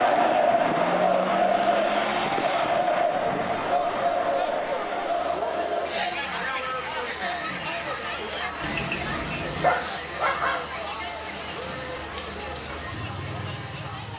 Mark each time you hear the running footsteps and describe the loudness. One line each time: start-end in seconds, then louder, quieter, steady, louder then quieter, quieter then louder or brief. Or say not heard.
not heard.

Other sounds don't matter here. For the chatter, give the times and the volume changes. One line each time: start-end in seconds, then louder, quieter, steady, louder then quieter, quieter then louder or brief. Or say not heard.
0.0-14.1 quieter.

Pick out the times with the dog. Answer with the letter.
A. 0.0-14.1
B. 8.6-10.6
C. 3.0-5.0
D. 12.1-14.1
B.